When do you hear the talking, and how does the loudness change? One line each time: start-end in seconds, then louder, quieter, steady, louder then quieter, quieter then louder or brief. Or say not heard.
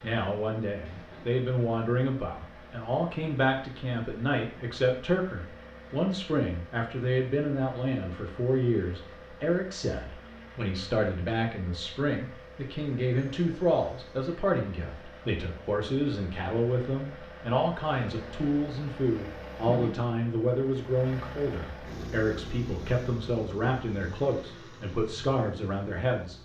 0.0-26.4 steady.